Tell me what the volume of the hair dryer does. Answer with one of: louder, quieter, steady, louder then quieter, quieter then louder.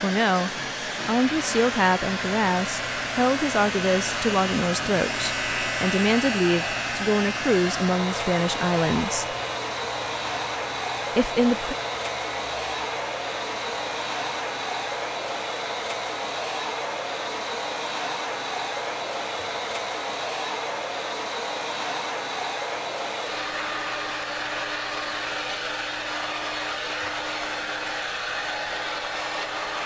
steady.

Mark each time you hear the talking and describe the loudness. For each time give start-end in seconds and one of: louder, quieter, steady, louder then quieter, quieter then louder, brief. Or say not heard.
0.0-9.3 steady
11.2-11.8 brief.